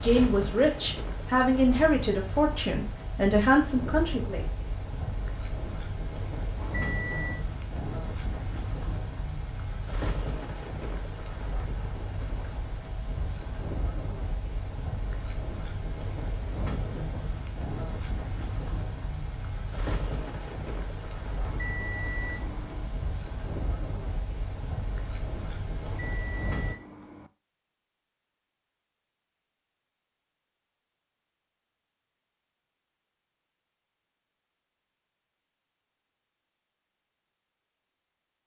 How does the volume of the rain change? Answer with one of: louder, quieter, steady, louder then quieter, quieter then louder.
steady.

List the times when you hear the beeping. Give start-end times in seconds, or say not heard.
6.5-7.5, 21.4-22.9, 25.8-27.3.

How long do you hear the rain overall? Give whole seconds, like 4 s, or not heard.
27 s.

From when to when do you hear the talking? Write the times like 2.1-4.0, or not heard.
0.0-4.5.